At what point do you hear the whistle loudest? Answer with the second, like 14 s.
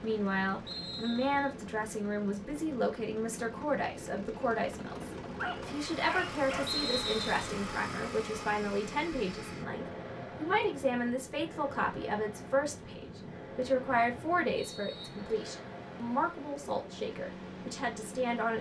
7 s.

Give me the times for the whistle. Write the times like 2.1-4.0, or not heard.
0.7-1.5, 6.7-7.5, 14.6-15.6.